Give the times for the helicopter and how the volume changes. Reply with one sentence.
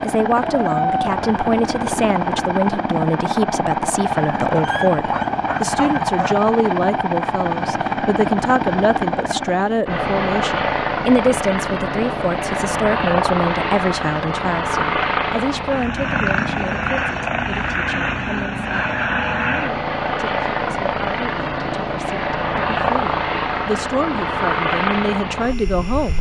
You can hear the helicopter from 0.0 to 26.1 s, at a steady volume.